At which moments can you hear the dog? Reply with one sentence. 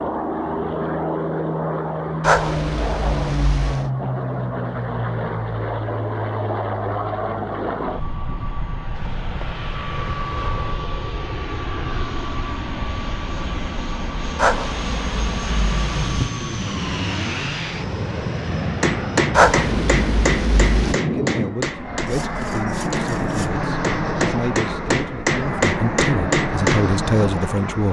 The dog can be heard from 2.2 to 3.9 s, from 14.3 to 16.3 s and from 19.3 to 20.9 s.